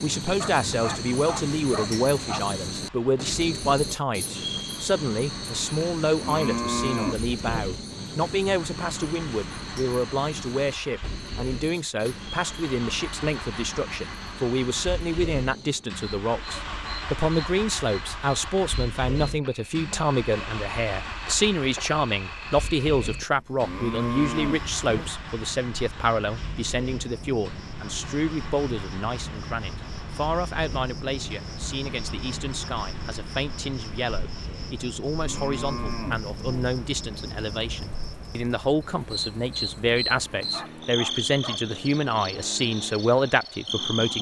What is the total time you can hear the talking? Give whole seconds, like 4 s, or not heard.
44 s.